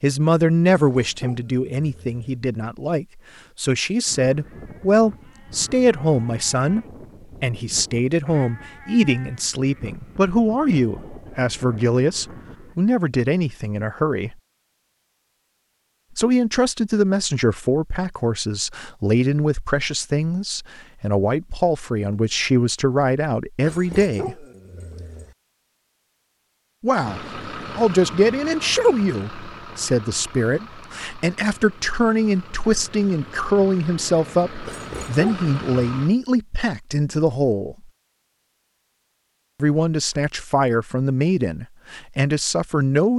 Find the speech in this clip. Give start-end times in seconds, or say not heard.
0.0-14.3, 16.1-24.4, 26.8-37.9, 39.6-43.1.